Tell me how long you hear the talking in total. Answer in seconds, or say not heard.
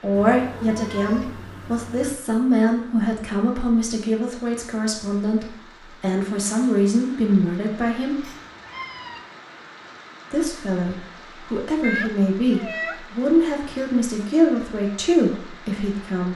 14 s.